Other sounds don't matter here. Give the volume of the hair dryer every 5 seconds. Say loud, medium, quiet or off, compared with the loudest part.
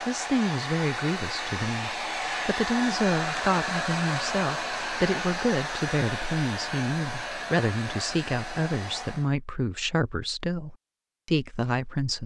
loud, loud, off.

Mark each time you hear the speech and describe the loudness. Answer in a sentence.
The speech can be heard from 0.1 to 12.2 s, at a steady volume.